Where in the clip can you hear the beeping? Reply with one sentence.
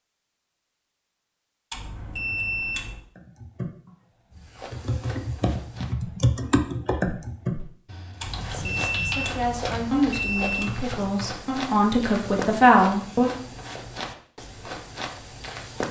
The beeping can be heard from 1.7 to 3.0 s and from 8.2 to 10.8 s.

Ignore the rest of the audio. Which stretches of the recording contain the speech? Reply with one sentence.
You can hear the speech from 8.5 to 13.3 s.